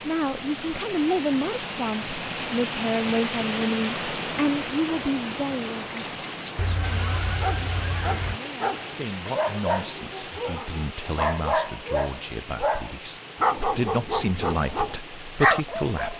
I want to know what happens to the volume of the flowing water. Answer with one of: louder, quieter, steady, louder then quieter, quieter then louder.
quieter.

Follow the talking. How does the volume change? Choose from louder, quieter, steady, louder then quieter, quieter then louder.
quieter then louder.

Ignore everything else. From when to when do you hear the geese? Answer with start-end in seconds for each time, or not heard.
6.5-8.4.